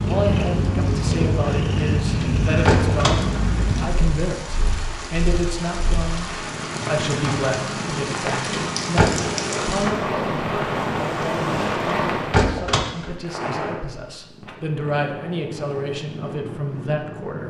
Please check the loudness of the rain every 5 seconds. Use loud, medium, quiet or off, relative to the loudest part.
quiet, medium, loud, off.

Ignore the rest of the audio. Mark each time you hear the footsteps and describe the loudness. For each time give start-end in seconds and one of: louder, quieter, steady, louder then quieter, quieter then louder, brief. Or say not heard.
not heard.